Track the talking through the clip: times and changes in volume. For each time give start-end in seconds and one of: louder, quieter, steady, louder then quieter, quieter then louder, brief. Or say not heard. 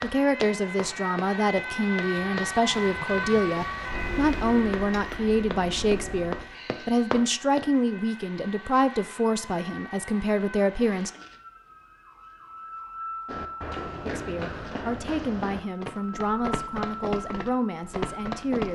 0.0-11.1 steady
14.1-18.6 steady.